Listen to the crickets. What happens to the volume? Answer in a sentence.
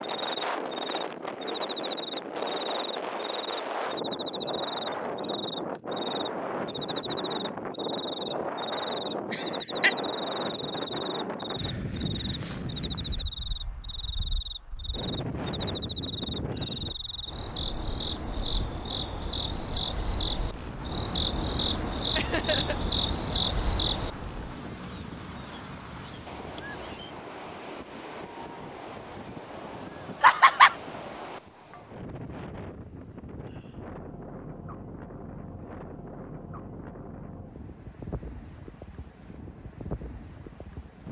The volume of the crickets goes up.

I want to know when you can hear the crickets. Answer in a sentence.
You can hear the crickets from 0.0 to 27.2 s.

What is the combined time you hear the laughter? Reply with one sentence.
The laughter can be heard for 2 seconds in total.